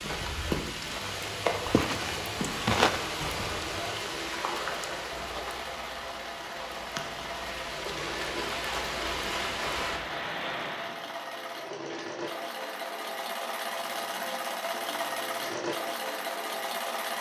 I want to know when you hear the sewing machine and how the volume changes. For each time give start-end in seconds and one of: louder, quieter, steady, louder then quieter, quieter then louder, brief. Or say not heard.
0.1-17.1 louder.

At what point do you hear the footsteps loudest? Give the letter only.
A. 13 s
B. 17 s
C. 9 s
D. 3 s
D.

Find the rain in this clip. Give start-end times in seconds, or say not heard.
0.0-11.1.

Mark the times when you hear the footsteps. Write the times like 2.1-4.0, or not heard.
0.0-3.0.